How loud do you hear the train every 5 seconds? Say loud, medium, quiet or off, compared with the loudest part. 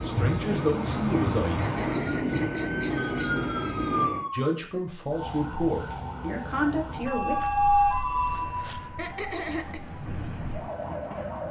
loud, quiet, medium.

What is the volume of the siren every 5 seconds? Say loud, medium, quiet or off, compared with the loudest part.
loud, loud, medium.